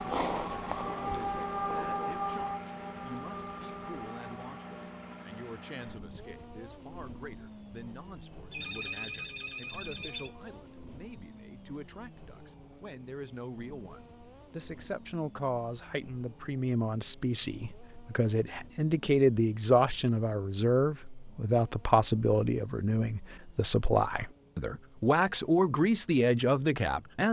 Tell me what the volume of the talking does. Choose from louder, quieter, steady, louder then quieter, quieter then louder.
louder.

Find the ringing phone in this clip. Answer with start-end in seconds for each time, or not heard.
8.5-10.3.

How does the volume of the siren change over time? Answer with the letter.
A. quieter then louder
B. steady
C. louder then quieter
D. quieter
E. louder
D.